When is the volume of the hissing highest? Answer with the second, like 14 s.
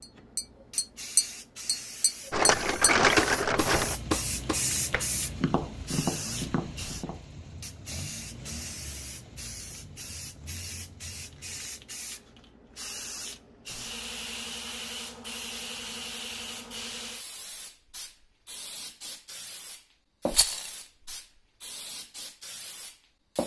5 s.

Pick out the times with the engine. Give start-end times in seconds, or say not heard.
3.5-11.9.